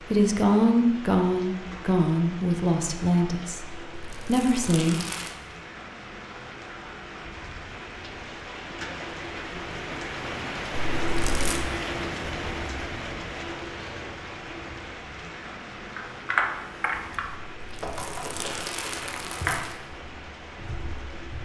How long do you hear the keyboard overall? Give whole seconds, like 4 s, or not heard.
5 s.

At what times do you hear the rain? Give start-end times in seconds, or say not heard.
0.0-21.3.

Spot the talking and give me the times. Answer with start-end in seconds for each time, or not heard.
0.0-5.0.